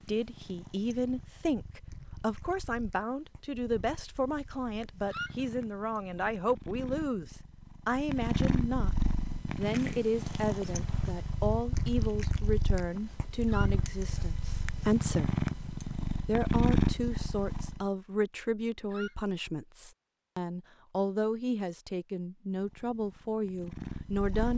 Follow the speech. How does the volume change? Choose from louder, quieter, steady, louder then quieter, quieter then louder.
steady.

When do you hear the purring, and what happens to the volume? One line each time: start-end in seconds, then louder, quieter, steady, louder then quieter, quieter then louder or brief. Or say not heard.
0.0-17.9 louder
22.5-24.5 brief.